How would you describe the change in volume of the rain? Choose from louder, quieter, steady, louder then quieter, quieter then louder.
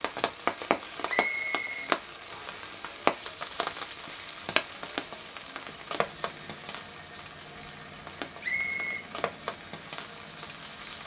quieter.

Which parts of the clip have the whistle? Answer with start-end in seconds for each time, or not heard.
1.1-2.6, 8.4-9.0.